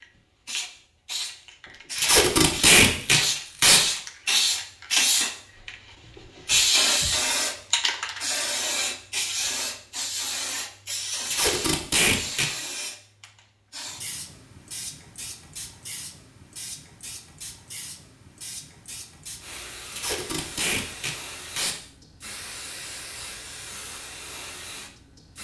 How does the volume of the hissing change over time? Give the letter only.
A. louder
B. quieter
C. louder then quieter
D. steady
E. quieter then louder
B.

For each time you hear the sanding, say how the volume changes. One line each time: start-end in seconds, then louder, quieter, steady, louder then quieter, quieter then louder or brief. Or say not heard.
not heard.